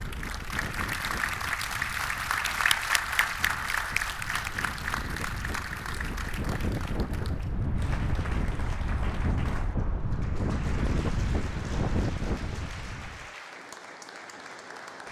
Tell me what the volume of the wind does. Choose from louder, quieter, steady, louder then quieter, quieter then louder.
louder.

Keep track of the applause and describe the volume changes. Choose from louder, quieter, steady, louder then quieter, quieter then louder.
quieter.